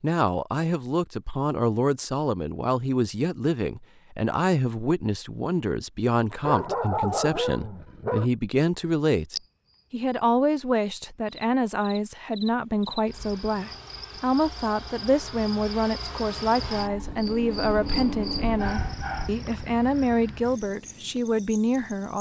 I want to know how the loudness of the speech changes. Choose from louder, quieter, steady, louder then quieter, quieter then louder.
steady.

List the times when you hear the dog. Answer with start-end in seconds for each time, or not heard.
6.4-8.3, 16.6-19.4.